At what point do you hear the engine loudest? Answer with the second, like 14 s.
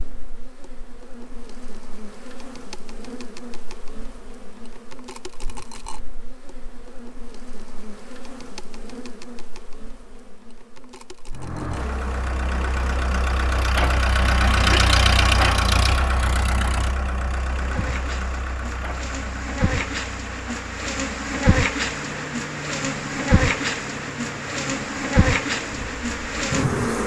15 s.